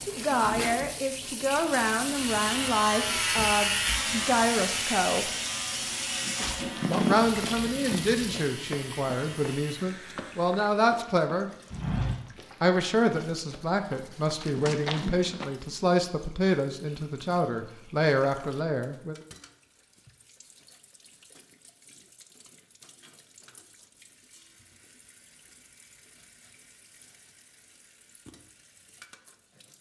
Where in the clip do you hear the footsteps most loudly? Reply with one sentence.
The volume of the footsteps peaks at 7 seconds.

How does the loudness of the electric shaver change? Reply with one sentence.
The loudness of the electric shaver goes down.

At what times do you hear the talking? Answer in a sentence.
The talking can be heard from 0.0 to 5.3 s, from 6.9 to 11.5 s and from 12.6 to 19.1 s.